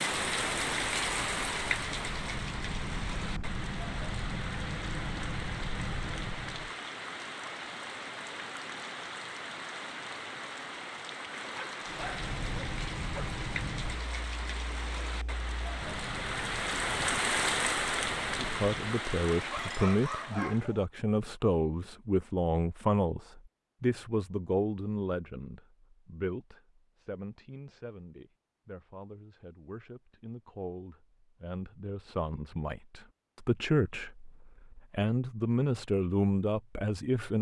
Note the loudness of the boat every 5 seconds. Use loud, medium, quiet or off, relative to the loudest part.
loud, loud, loud, medium, off, off, off, off.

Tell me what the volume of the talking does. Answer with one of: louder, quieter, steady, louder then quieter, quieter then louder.
quieter then louder.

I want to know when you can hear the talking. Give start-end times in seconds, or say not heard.
18.4-37.3.